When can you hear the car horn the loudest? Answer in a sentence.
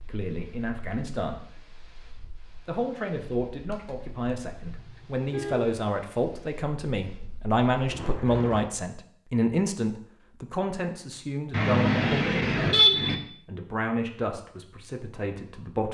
The volume of the car horn peaks at 13 seconds.